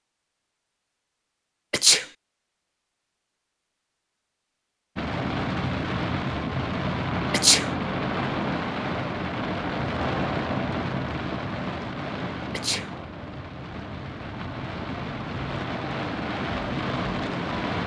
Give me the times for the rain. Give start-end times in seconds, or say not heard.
5.0-17.8.